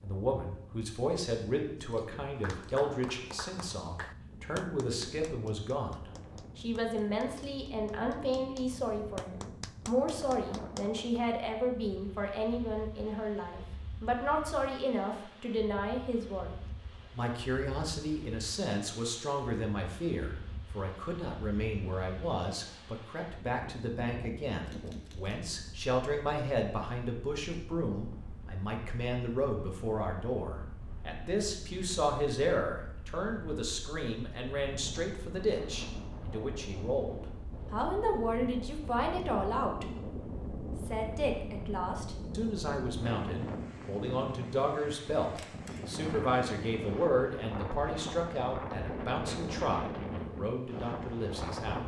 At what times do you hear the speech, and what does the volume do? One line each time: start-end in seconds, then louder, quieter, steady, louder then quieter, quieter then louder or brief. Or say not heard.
0.0-51.8 steady.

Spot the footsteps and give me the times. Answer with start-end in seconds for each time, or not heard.
not heard.